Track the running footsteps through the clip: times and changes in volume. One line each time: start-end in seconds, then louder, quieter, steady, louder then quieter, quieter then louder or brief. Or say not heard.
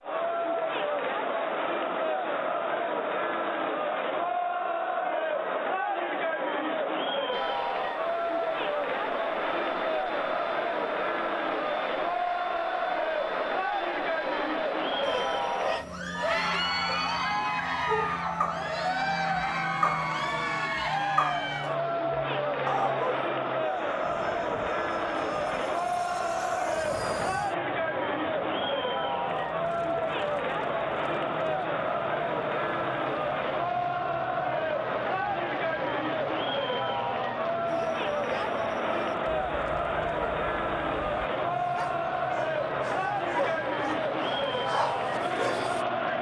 not heard.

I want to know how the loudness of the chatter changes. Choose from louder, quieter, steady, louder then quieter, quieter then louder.
steady.